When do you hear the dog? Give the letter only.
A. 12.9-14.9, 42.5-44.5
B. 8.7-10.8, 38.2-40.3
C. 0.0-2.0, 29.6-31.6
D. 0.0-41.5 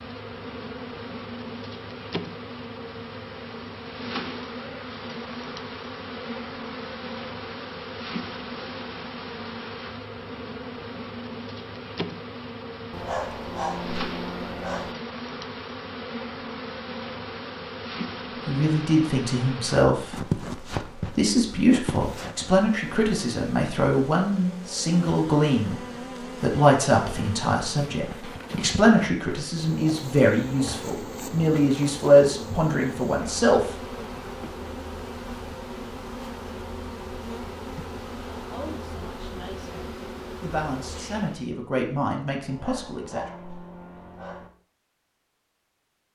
A.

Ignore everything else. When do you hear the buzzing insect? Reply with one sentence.
The buzzing insect can be heard from 0.0 to 41.5 s.